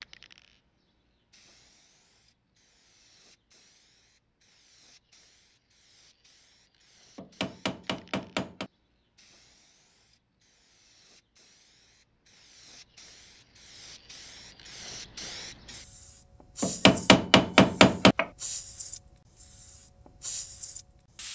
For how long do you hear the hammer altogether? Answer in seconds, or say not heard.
3 s.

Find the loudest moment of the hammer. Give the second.
18 s.